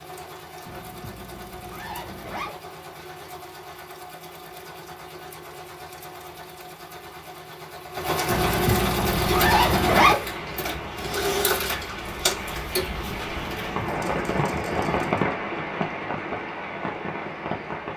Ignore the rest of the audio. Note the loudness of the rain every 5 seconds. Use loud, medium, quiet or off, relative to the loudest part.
off, off, loud, loud.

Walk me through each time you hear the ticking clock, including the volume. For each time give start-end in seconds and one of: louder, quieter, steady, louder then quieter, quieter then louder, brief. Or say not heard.
not heard.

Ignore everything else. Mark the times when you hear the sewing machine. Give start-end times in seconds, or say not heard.
0.0-15.3.